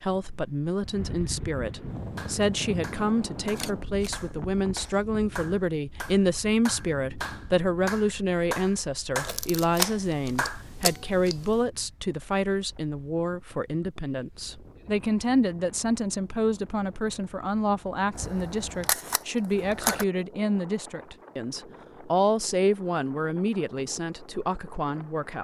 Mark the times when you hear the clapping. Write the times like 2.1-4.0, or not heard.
1.9-10.7.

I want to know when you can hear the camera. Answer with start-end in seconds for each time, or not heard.
3.5-4.1, 9.2-11.6, 18.1-20.1.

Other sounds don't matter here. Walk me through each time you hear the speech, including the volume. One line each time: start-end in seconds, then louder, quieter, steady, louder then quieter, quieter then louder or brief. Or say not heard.
0.0-25.3 steady.